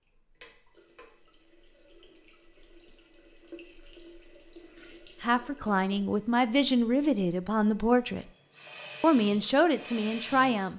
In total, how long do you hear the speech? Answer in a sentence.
The speech can be heard for 5 seconds in total.